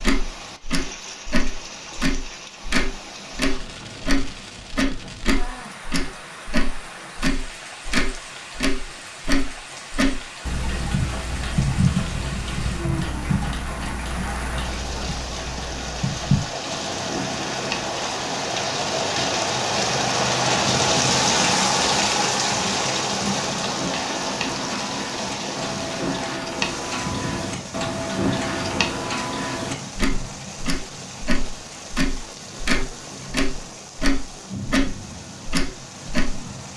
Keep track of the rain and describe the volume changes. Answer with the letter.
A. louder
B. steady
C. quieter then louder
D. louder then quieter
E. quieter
D.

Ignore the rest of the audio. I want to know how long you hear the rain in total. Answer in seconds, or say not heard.
37 s.